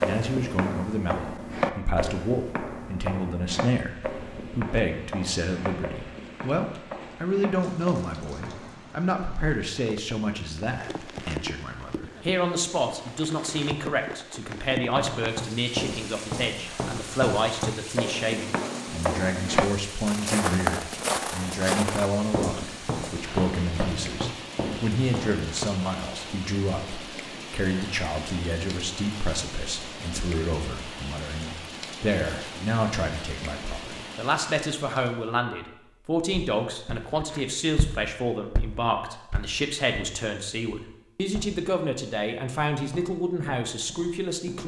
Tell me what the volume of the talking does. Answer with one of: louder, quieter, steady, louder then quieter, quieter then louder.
steady.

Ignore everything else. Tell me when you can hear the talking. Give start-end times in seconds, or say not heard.
0.0-44.6.